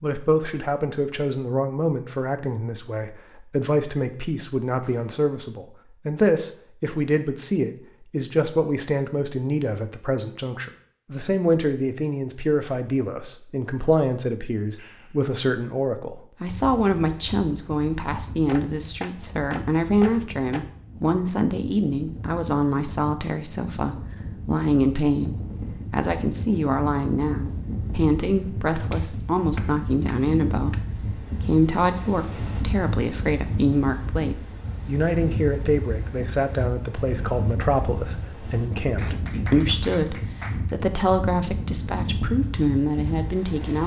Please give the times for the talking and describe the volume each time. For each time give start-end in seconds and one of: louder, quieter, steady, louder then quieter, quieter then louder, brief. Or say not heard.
0.0-43.8 steady.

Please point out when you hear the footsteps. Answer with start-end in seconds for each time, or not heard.
not heard.